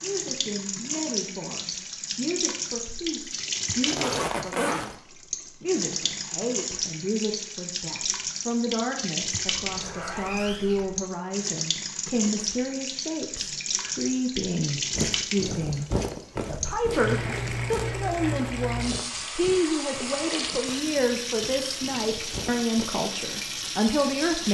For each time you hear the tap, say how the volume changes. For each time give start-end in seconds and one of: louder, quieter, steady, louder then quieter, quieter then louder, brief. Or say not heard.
0.0-24.4 steady.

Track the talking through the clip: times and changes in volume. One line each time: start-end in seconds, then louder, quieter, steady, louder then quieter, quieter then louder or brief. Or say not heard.
0.0-24.4 louder.